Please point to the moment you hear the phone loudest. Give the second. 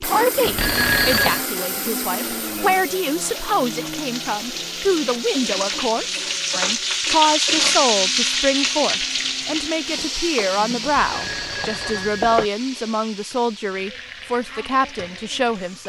1 s.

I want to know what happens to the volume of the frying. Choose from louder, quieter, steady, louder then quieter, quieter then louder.
louder then quieter.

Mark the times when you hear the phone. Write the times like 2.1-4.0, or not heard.
0.5-1.4, 10.8-12.5.